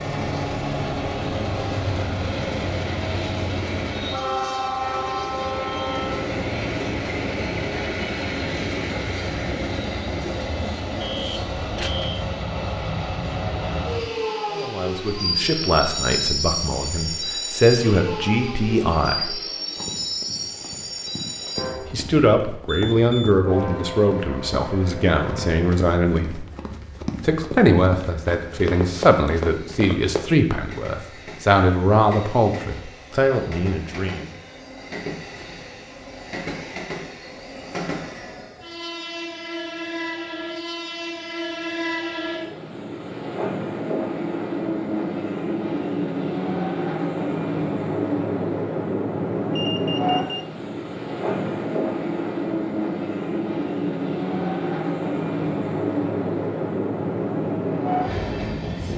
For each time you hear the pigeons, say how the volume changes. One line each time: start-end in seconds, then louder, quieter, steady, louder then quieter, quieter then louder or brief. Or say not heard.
not heard.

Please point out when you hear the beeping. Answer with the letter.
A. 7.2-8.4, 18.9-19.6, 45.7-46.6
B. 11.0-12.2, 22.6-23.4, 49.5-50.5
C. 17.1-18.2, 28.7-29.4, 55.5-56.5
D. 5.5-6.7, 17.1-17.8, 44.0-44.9
B.